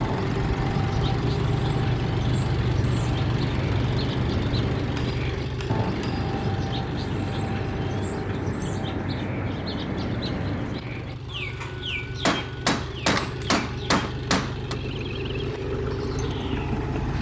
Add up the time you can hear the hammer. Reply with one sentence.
The hammer can be heard for 4 seconds in total.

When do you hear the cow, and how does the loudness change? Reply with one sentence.
The cow can't be heard in this clip.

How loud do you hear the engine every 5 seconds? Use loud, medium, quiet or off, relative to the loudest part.
loud, medium, medium, loud.